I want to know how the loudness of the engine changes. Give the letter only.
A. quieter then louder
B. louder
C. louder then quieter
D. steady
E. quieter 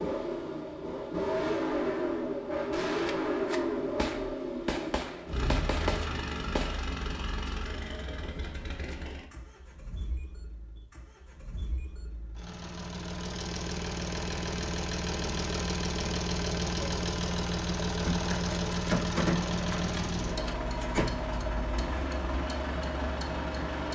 A.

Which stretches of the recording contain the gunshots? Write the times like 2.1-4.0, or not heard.
3.0-6.8, 18.1-21.6.